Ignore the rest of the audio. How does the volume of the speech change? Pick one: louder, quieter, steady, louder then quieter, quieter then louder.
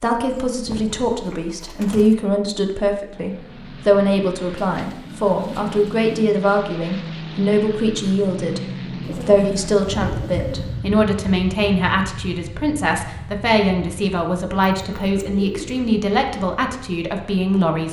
steady.